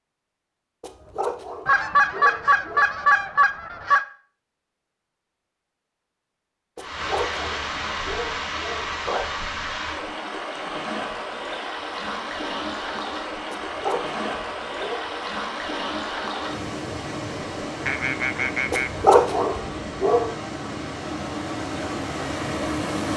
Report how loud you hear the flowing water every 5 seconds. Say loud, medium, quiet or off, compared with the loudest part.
off, loud, loud, loud, loud.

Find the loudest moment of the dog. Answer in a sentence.
The volume of the dog peaks at 19 seconds.